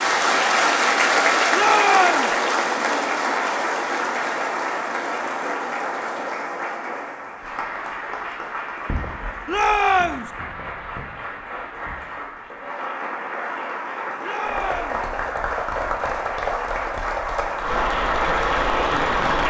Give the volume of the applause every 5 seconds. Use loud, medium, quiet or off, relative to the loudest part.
loud, medium, medium, loud.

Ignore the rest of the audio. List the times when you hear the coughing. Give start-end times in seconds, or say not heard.
not heard.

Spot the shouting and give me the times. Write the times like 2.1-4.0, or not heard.
1.5-2.4, 9.4-10.3, 14.2-15.1.